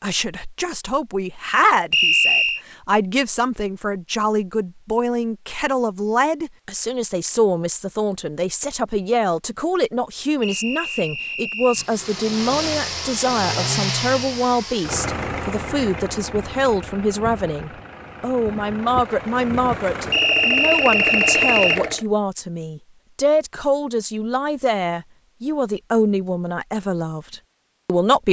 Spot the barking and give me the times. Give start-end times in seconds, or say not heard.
not heard.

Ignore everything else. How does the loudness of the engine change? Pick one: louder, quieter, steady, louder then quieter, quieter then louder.
quieter then louder.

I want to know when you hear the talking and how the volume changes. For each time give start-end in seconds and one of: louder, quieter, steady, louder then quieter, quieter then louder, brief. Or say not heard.
0.0-28.2 steady.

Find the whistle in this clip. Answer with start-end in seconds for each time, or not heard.
1.9-2.6, 10.4-11.9, 20.1-21.8.